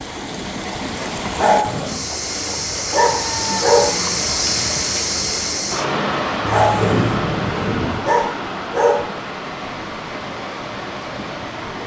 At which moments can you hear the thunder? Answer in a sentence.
You can hear the thunder from 6.4 to 8.0 s.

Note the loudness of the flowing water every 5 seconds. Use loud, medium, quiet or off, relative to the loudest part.
loud, loud, medium.